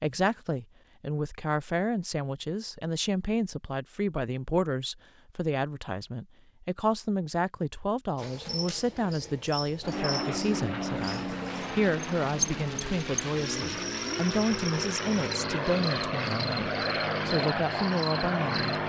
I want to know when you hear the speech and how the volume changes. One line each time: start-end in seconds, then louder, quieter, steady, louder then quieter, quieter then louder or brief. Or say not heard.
0.0-18.8 steady.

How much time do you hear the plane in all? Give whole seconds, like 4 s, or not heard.
9 s.